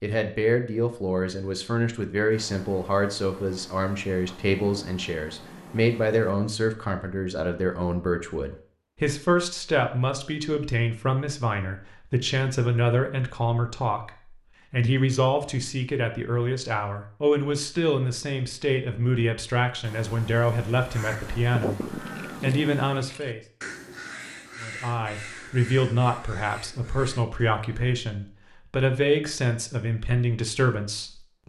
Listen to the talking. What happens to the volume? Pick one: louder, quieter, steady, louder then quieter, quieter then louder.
steady.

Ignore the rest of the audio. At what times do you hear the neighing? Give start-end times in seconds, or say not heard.
not heard.